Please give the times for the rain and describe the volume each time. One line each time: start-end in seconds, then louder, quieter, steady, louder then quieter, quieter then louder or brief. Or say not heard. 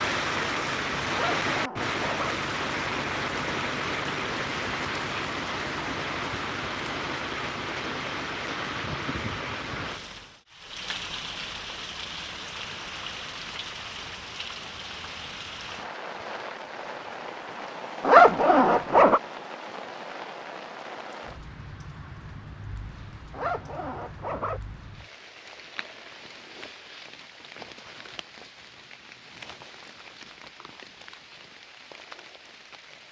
0.0-33.0 quieter.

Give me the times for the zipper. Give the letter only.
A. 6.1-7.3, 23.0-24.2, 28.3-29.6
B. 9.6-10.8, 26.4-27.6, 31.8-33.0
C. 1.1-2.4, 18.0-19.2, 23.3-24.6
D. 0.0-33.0
C.